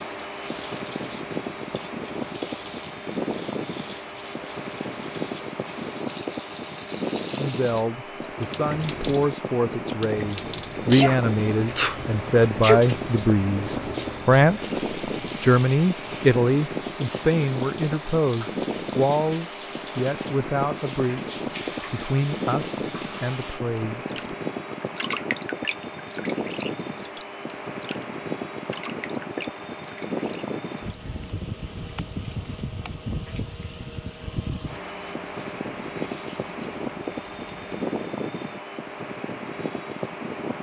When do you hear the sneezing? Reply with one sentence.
You can hear the sneezing from 10.9 to 12.8 s.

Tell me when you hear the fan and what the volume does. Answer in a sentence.
The fan can be heard from 0.0 to 40.5 s, at a steady volume.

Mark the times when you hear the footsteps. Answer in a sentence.
The footsteps can't be heard in this clip.